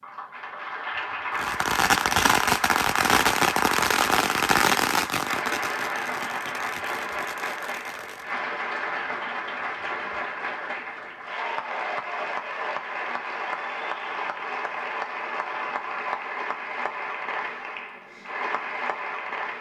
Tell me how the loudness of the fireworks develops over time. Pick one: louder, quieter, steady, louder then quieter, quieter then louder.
quieter.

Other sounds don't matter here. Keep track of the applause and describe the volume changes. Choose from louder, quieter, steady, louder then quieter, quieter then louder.
steady.